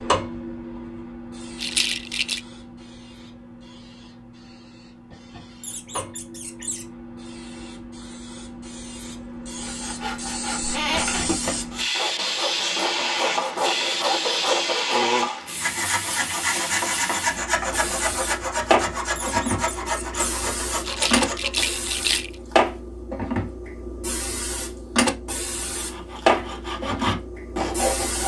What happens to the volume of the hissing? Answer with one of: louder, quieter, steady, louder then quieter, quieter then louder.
louder.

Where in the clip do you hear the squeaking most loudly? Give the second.
11 s.